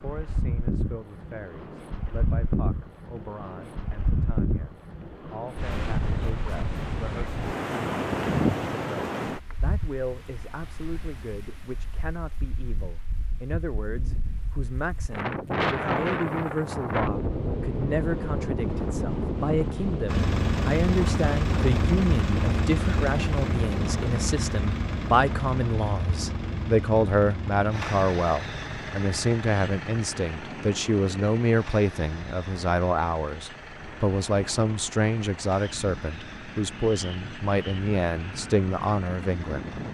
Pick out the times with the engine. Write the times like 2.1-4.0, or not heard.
20.1-39.8.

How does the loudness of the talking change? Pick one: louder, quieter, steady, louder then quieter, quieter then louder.
louder.